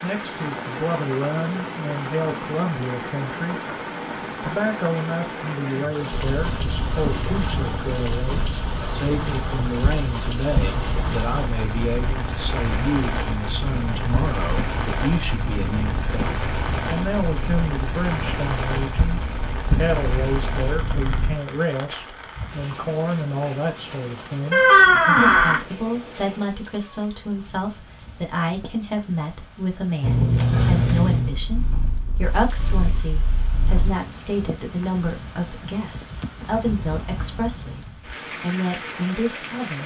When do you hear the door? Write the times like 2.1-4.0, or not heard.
24.5-25.6.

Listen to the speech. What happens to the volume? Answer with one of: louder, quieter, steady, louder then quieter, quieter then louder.
steady.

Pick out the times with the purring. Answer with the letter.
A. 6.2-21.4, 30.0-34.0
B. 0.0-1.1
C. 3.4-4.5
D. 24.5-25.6
A.